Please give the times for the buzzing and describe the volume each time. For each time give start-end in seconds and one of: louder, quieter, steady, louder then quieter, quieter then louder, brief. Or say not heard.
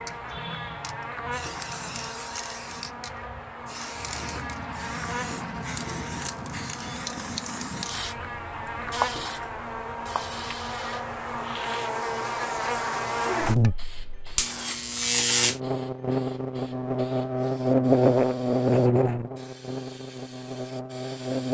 0.0-21.5 louder.